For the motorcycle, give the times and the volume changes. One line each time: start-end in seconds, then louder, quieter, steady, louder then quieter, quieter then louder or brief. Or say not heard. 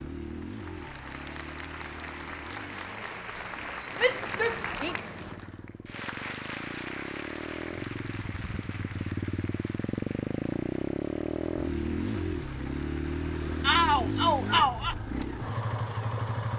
0.0-16.5 louder.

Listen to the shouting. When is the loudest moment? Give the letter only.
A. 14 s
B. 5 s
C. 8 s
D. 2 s
A.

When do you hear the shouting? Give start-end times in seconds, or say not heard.
4.0-5.0, 13.6-14.9.